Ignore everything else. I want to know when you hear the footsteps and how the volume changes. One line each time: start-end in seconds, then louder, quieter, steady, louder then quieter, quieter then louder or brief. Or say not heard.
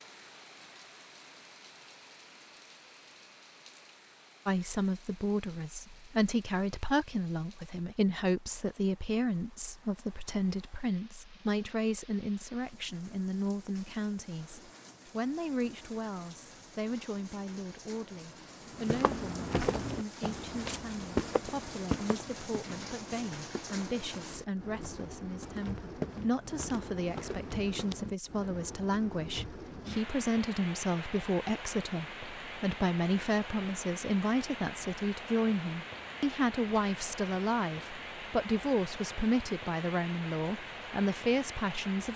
18.7-27.9 quieter then louder.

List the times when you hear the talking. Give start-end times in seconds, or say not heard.
4.5-42.1.